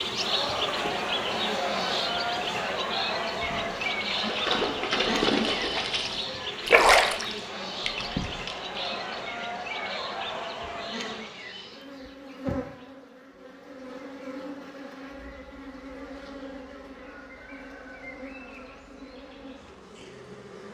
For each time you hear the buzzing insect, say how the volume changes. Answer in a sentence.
The buzzing insect can be heard from 0.0 to 20.6 s, getting quieter.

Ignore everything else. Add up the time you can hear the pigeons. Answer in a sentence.
You can't hear the pigeons here.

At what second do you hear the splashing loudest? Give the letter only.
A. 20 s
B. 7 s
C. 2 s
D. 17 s
B.